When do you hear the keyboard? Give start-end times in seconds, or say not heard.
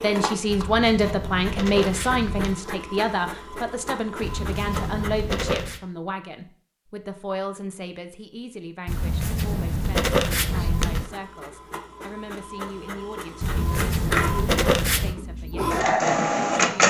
not heard.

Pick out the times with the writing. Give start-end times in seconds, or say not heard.
0.5-2.5, 4.2-5.8, 8.8-11.1, 13.4-15.2.